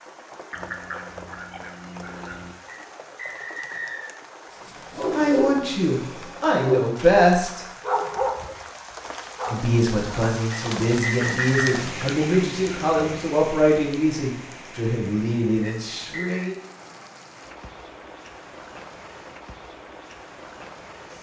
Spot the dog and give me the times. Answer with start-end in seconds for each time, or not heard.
4.5-10.2.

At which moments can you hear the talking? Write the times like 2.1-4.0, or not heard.
5.1-7.7, 9.5-16.6.